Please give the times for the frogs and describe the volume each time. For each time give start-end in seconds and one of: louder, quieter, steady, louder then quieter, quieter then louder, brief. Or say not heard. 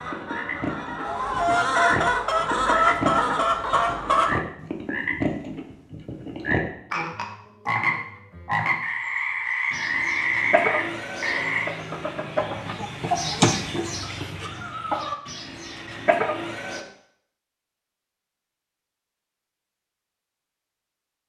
0.0-11.7 louder.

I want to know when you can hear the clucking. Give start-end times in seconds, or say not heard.
0.0-4.4, 9.7-16.9.